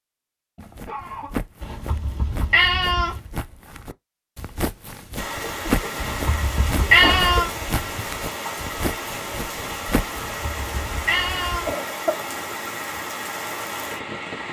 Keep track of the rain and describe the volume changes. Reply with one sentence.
The loudness of the rain stays about the same.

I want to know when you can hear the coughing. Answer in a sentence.
You can hear the coughing from 0.6 to 1.4 s, from 5.4 to 6.0 s, from 6.8 to 7.4 s and from 11.7 to 12.2 s.